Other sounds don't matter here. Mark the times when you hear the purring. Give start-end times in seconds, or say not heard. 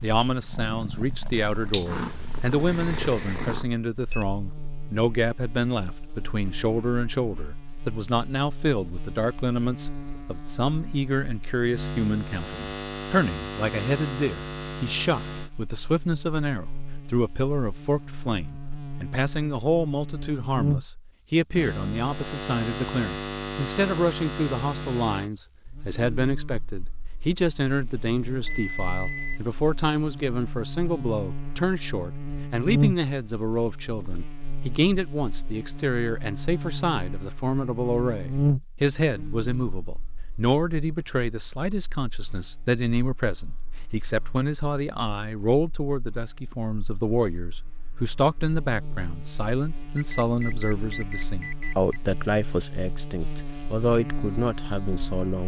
0.0-3.6.